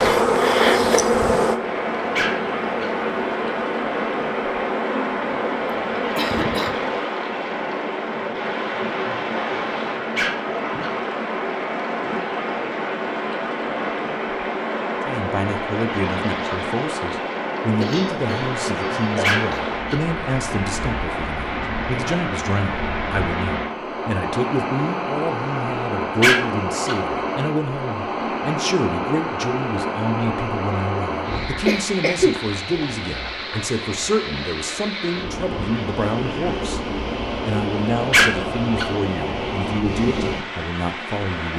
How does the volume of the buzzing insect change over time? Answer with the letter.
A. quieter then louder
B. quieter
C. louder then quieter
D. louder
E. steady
B.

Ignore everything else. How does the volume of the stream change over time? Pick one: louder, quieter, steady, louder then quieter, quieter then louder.
steady.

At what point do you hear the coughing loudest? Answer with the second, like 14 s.
32 s.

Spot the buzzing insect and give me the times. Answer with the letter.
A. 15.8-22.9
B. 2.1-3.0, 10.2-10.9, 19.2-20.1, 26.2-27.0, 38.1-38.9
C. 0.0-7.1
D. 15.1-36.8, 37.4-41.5
C.